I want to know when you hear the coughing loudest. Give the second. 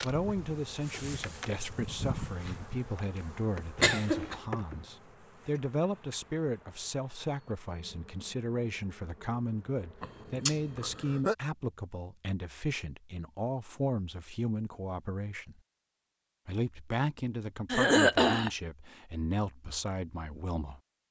18 s.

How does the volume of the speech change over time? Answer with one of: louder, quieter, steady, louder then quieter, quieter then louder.
steady.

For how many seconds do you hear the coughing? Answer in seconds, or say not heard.
3 s.